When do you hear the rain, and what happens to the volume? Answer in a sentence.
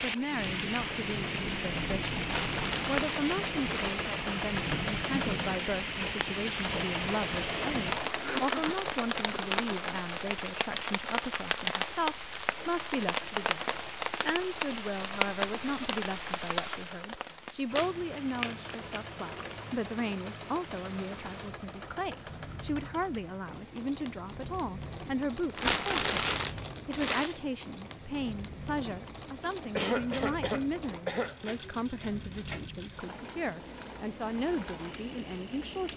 The rain can be heard from 0.0 to 35.9 s, getting quieter.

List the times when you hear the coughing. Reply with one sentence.
You can hear the coughing from 8.0 to 9.9 s and from 29.8 to 32.0 s.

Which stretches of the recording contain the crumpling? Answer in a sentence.
The crumpling can be heard from 2.2 to 4.0 s, from 17.8 to 19.6 s and from 25.5 to 27.4 s.